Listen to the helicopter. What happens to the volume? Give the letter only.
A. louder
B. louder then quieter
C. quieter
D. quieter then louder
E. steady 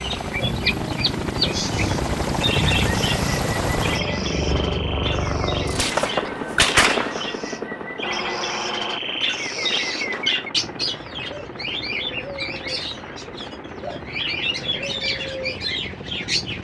C.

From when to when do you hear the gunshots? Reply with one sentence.
The gunshots can be heard from 5.7 to 7.2 s.